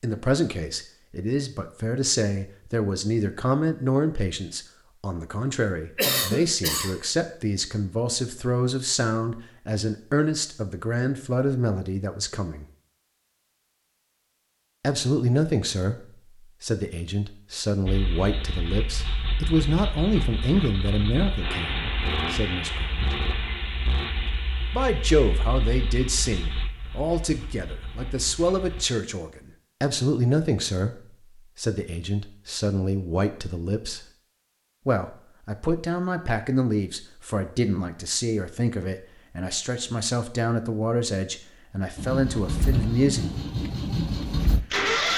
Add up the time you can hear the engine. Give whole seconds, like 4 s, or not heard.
14 s.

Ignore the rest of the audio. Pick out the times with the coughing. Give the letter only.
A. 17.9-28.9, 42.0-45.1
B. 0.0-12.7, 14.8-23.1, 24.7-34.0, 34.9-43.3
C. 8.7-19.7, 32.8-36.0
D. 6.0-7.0
D.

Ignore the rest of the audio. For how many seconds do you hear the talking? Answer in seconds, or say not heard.
39 s.